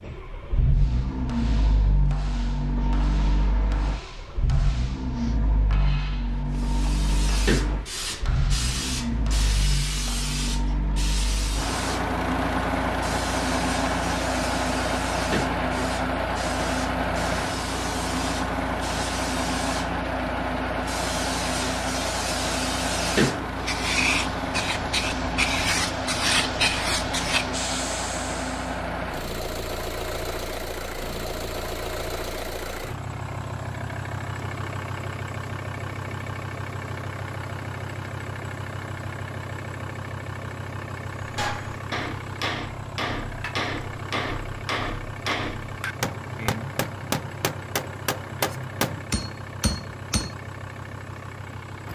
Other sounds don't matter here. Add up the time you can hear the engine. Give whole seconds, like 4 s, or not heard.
52 s.